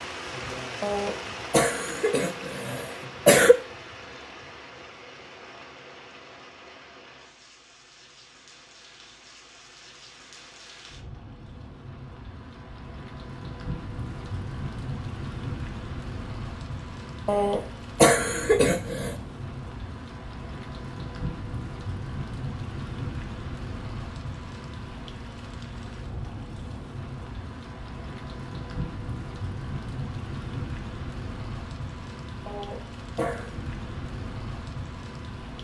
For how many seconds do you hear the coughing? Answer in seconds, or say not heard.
6 s.